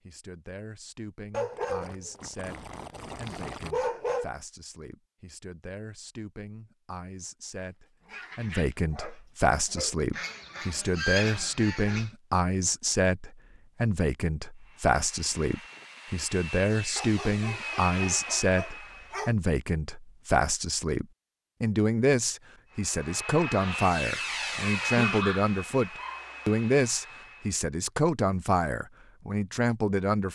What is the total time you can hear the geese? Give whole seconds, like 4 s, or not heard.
2 s.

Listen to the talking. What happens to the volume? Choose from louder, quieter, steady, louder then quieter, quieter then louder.
louder.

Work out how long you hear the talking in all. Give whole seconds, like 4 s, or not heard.
30 s.